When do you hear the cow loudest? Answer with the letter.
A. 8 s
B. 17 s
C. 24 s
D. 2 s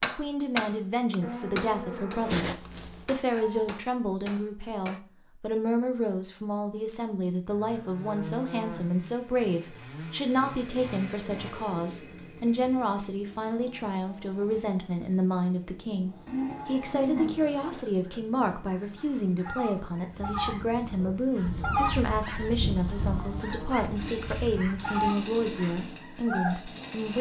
B.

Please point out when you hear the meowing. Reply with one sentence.
The meowing can be heard from 2.2 to 3.8 s.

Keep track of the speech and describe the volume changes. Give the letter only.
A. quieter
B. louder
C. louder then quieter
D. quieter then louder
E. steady
E.